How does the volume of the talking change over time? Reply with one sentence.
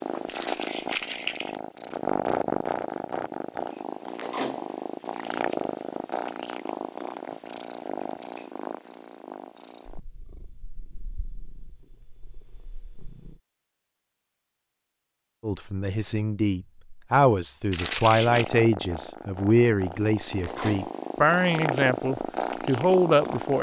The volume of the talking stays about the same.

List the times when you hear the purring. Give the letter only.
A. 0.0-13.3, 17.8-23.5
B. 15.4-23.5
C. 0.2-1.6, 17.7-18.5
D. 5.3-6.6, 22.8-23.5
A.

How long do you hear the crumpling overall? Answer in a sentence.
You can hear the crumpling for 2 seconds altogether.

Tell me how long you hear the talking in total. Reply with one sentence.
You can hear the talking for 8 seconds altogether.